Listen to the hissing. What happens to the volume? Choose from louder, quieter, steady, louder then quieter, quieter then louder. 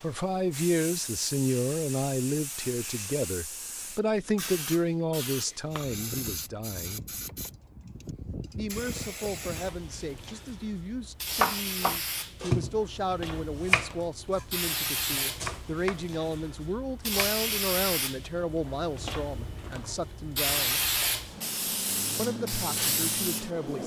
louder.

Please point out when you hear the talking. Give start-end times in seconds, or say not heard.
0.0-7.0, 8.6-20.8, 22.1-23.8.